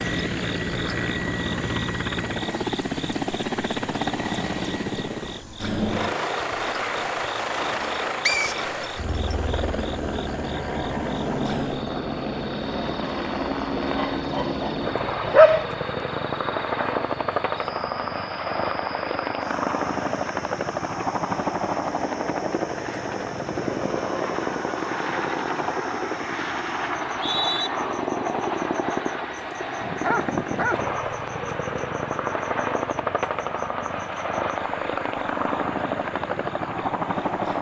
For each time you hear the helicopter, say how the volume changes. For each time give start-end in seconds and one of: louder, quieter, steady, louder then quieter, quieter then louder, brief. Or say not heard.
0.0-37.5 steady.